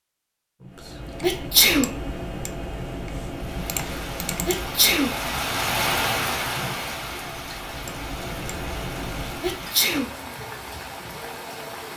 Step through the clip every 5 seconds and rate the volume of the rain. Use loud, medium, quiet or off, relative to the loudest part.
medium, loud, medium.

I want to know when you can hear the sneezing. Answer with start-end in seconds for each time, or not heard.
1.2-1.9, 4.5-5.2, 9.4-10.1.